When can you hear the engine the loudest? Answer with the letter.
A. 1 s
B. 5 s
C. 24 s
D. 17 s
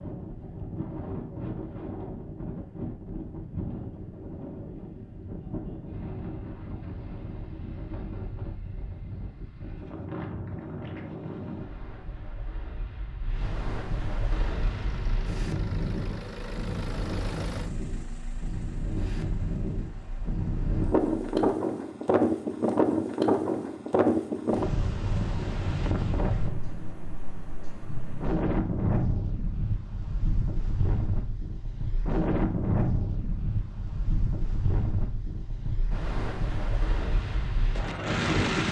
D.